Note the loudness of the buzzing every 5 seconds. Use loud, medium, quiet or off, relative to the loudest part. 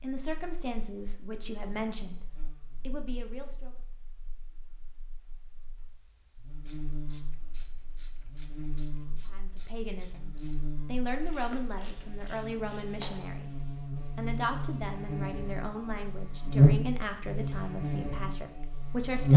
quiet, quiet, quiet, loud.